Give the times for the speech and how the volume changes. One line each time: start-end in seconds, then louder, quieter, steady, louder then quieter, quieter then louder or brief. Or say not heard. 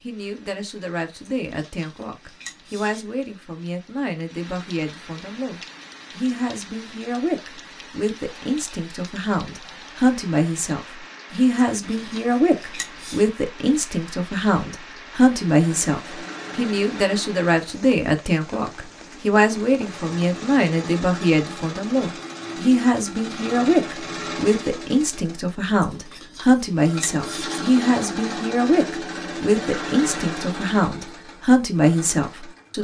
0.0-32.7 louder.